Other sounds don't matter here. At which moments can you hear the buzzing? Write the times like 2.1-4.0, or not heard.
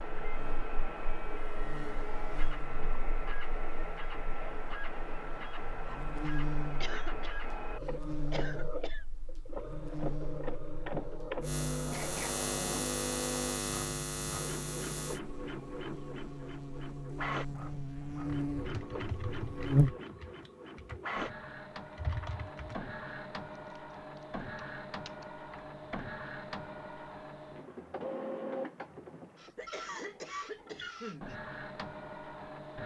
0.0-20.0.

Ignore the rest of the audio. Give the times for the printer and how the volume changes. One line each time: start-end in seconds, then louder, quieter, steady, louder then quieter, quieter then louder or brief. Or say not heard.
0.0-32.8 steady.